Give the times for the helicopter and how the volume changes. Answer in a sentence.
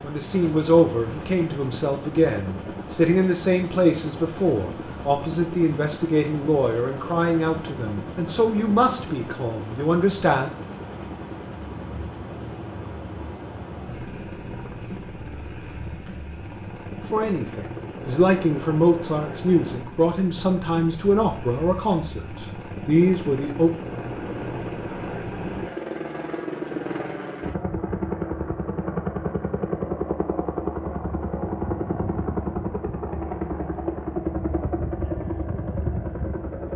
The helicopter can be heard from 0.0 to 36.7 s, getting louder.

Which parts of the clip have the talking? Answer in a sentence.
You can hear the talking from 0.0 to 10.5 s and from 17.0 to 23.7 s.